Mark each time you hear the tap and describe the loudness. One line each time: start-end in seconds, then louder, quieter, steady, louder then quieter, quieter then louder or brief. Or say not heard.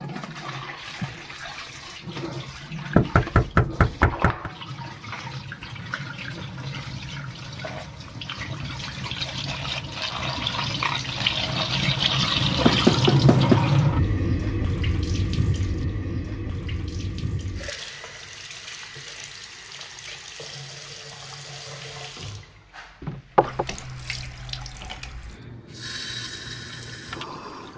0.0-27.7 louder then quieter.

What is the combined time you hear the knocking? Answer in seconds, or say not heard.
3 s.